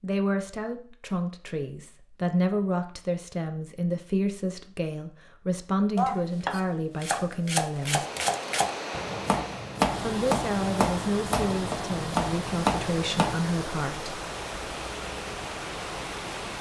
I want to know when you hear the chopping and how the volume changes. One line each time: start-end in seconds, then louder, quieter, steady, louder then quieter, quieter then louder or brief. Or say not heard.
6.0-13.4 steady.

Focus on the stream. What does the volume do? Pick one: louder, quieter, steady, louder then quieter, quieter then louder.
steady.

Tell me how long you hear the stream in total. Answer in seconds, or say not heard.
9 s.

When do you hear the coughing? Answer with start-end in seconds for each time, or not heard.
not heard.